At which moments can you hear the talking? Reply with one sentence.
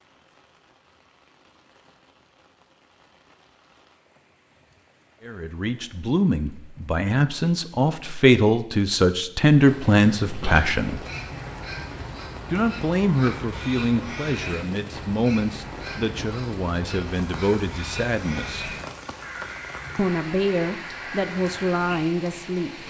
The talking can be heard from 5.2 to 11.0 s, from 12.5 to 18.7 s and from 19.9 to 22.8 s.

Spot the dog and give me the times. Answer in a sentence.
You can't hear the dog here.